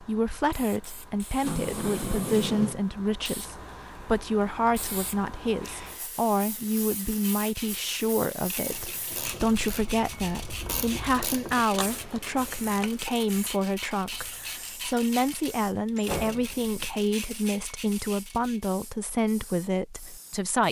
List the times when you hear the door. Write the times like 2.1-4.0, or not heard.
1.4-2.8, 15.9-17.0.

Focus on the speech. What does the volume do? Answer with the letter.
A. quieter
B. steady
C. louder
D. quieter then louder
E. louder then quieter
B.